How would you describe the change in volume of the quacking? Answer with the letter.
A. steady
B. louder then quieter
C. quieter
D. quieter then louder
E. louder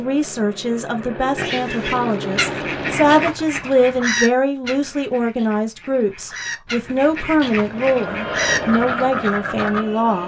D.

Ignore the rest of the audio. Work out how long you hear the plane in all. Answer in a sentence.
You can hear the plane for 6 seconds altogether.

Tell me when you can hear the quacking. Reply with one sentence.
The quacking can be heard from 1.4 to 9.8 s.